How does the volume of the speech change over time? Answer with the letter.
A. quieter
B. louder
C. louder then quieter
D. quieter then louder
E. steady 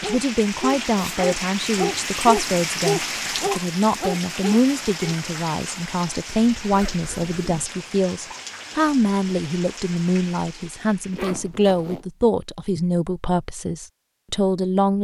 E.